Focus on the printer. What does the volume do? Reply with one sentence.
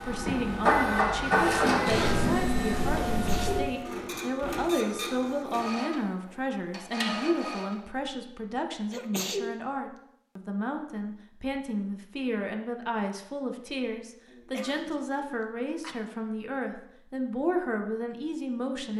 The volume of the printer goes down.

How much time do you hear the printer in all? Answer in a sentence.
The printer can be heard for 8 seconds in total.